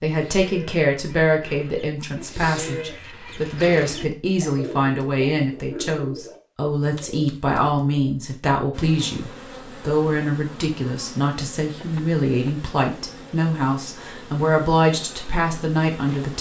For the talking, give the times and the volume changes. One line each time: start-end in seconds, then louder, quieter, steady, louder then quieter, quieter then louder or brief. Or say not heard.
0.0-16.3 steady.